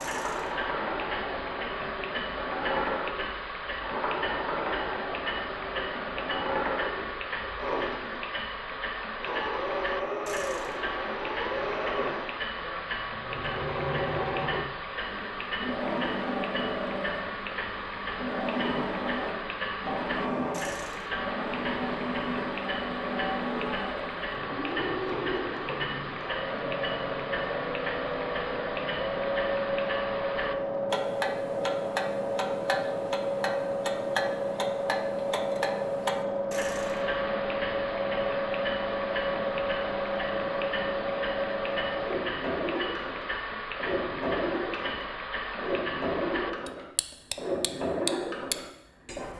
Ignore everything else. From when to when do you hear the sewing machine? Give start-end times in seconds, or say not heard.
0.0-49.3.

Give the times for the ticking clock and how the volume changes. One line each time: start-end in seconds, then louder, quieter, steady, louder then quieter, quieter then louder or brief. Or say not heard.
0.0-49.3 steady.